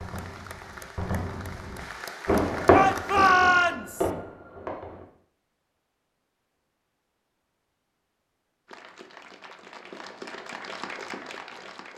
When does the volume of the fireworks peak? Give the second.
3 s.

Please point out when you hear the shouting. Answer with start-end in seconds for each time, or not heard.
2.7-4.1.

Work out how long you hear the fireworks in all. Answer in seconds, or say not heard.
5 s.